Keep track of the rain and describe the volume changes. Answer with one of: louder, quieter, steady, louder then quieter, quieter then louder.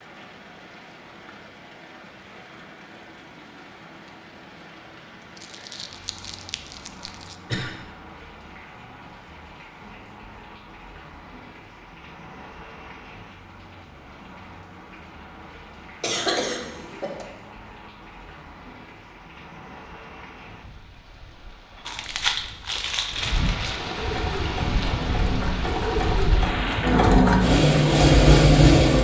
louder.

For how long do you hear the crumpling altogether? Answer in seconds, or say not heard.
4 s.